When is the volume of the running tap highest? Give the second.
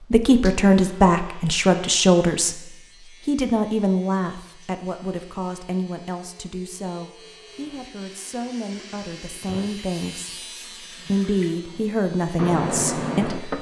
13 s.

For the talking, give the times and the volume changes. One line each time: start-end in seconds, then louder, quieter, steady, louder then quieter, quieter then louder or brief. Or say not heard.
0.1-13.5 quieter then louder.